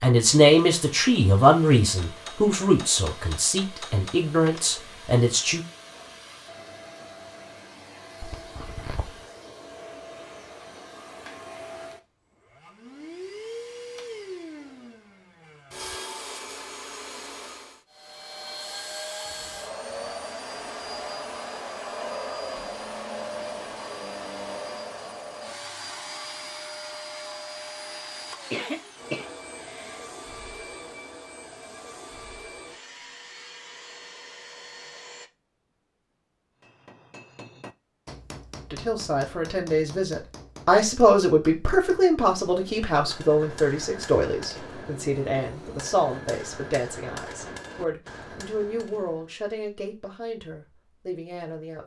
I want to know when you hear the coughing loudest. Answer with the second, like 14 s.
29 s.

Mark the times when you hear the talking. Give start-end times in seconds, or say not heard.
0.0-5.6, 38.7-51.8.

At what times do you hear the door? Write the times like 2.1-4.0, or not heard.
not heard.